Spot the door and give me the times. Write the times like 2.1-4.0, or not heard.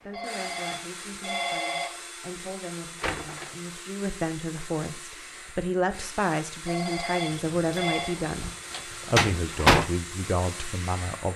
3.0-3.5, 7.3-9.8.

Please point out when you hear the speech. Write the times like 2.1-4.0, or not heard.
0.0-11.3.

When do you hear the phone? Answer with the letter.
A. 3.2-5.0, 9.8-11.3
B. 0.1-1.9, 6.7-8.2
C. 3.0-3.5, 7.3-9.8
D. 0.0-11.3
B.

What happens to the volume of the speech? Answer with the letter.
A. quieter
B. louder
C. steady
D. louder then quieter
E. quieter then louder
B.